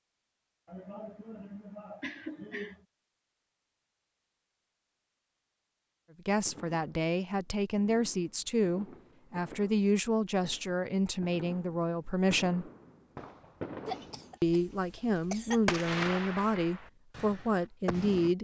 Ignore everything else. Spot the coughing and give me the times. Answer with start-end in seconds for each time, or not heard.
0.7-2.9, 13.8-15.8.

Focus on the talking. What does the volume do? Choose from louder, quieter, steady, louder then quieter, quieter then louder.
steady.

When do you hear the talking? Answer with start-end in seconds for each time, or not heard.
6.2-12.7, 14.4-18.3.